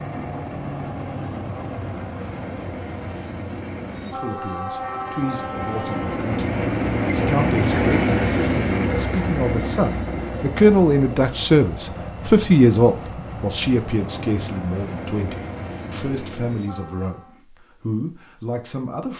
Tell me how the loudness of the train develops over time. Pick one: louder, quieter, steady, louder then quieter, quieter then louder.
louder then quieter.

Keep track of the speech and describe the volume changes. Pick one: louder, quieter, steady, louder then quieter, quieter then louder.
louder then quieter.